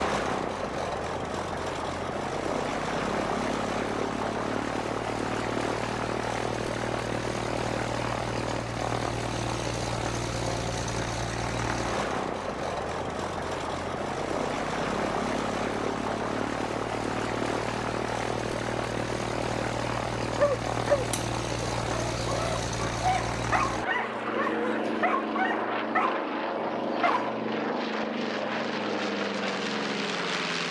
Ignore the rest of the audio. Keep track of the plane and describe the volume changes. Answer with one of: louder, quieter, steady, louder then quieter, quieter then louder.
steady.